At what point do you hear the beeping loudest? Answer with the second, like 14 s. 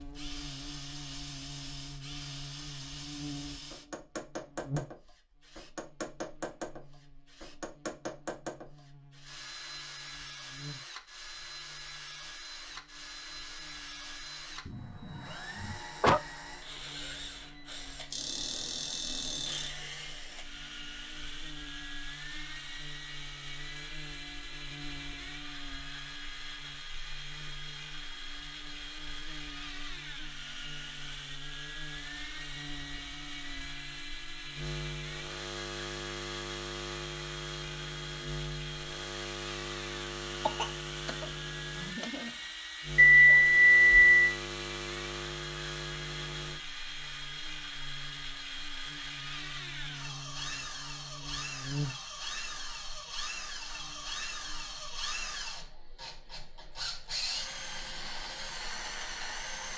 43 s.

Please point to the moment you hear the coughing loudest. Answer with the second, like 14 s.
16 s.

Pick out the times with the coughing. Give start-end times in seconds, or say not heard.
14.7-16.2, 40.5-42.3.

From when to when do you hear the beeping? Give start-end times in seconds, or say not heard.
18.1-19.8, 43.0-44.2.